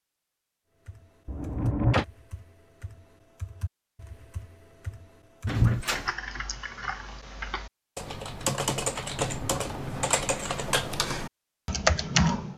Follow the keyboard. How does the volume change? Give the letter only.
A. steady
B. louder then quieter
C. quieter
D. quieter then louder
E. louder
E.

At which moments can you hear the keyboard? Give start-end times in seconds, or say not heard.
0.8-12.5.